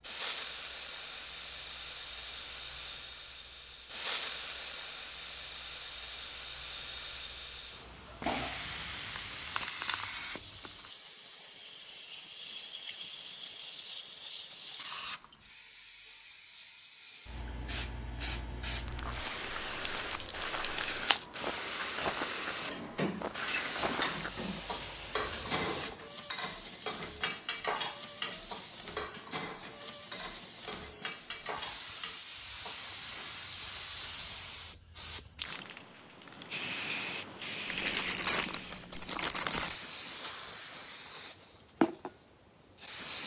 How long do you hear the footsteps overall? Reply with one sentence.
The footsteps can be heard for 6 seconds in total.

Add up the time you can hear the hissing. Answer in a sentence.
The hissing can be heard for 43 seconds in total.